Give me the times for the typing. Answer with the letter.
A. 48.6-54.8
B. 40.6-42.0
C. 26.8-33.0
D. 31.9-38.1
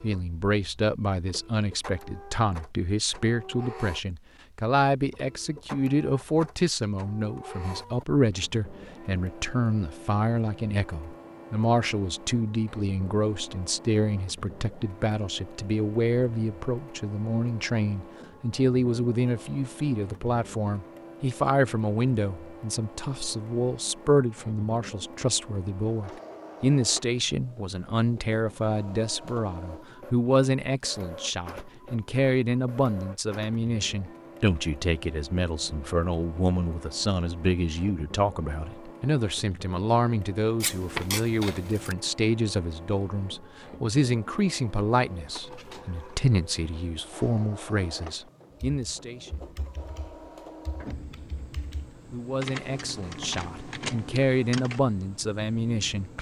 A.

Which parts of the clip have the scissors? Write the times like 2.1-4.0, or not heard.
40.6-42.0.